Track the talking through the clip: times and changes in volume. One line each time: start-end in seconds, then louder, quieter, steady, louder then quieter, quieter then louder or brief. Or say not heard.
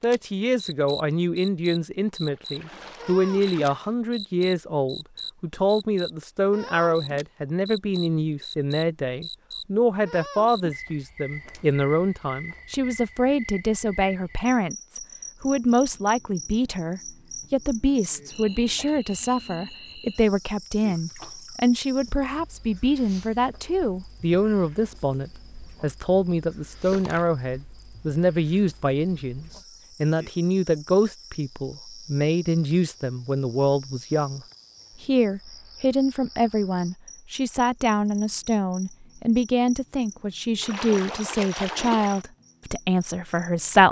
0.0-34.4 steady
35.0-43.8 steady.